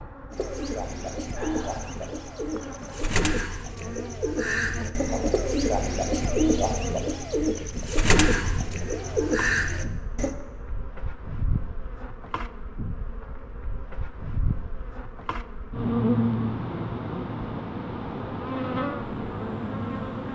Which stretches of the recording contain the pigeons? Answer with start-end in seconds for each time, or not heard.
0.3-10.3.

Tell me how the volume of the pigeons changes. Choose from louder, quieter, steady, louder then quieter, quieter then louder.
louder.